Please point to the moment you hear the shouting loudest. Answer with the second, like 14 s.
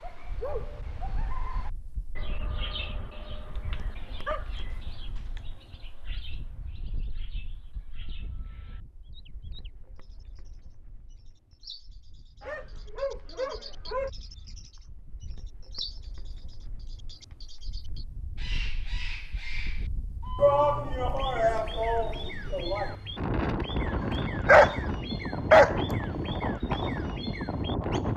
21 s.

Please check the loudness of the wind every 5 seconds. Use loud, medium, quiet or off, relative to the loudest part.
quiet, quiet, quiet, quiet, loud, loud.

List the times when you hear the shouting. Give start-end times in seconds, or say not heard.
20.4-22.9.